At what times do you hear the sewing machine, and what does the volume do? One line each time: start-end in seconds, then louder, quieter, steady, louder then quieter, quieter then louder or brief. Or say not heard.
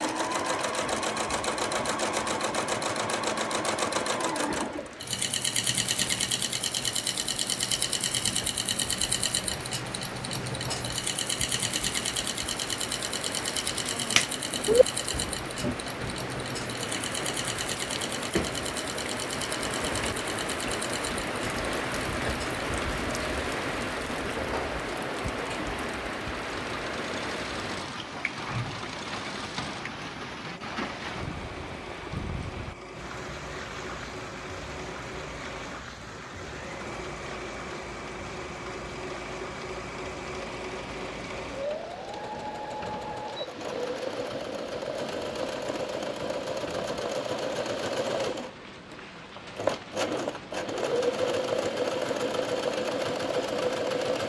0.0-54.2 quieter then louder.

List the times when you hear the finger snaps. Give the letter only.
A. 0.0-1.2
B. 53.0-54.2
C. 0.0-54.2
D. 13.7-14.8
D.